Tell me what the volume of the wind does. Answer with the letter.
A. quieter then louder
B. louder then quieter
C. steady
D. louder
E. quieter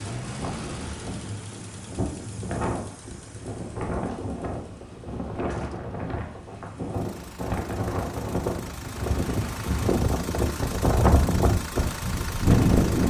D.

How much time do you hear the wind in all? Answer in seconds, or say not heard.
13 s.